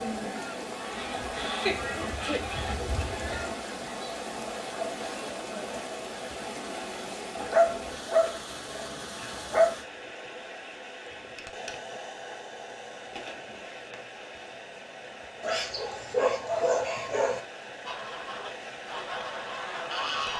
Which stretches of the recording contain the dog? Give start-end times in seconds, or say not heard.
1.6-3.5, 7.4-9.8, 15.4-17.4.